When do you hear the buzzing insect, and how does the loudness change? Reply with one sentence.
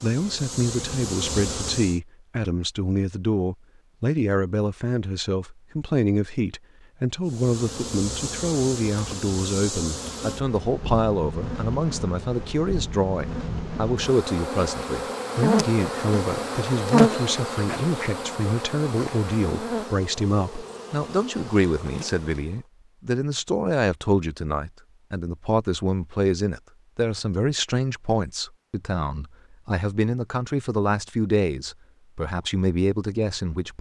You can hear the buzzing insect briefly from 0.0 to 2.0 s; and from 7.2 to 22.6 s, getting louder then quieter.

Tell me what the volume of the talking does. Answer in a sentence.
The loudness of the talking stays about the same.